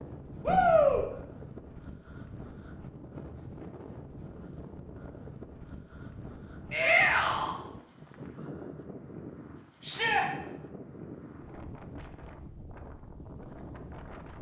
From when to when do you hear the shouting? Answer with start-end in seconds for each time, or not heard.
0.5-1.1, 6.7-7.5, 9.8-10.2.